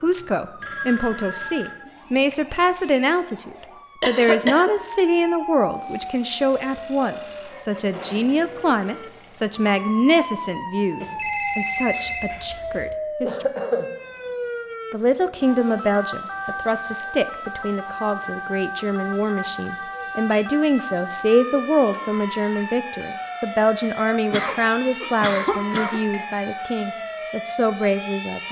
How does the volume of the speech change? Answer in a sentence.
The volume of the speech stays about the same.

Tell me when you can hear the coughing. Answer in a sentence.
You can hear the coughing from 4.0 to 4.8 s, from 13.2 to 13.9 s and from 24.1 to 26.0 s.